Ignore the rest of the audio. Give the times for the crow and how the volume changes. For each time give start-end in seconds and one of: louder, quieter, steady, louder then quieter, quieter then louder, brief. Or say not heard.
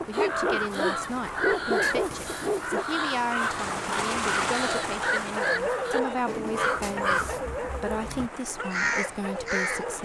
0.1-9.8 steady.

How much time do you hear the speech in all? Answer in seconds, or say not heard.
10 s.